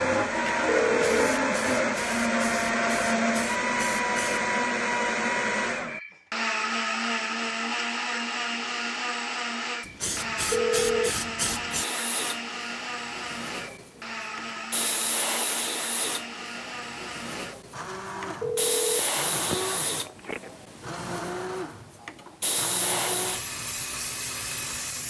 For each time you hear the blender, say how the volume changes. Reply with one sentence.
The blender can be heard from 0.0 to 25.0 s, getting quieter.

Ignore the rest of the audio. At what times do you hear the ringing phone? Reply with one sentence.
The ringing phone can be heard from 0.7 to 1.2 s, from 10.5 to 11.1 s and from 18.4 to 20.5 s.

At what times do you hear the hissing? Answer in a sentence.
The hissing can be heard from 0.2 to 4.5 s and from 9.8 to 25.0 s.